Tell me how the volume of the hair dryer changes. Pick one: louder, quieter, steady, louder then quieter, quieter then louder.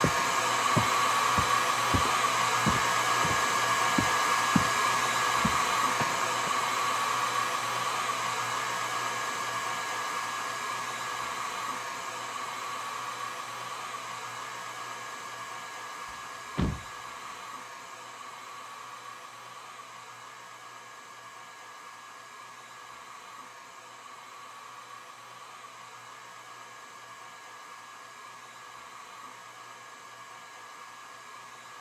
quieter.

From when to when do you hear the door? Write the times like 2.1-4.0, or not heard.
16.1-17.4.